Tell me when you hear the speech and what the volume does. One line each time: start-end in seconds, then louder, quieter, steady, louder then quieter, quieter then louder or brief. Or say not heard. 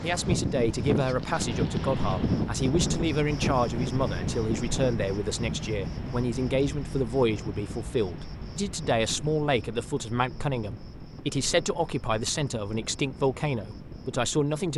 0.0-14.7 steady.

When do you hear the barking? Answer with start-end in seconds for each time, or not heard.
not heard.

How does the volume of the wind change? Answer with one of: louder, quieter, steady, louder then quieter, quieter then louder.
quieter.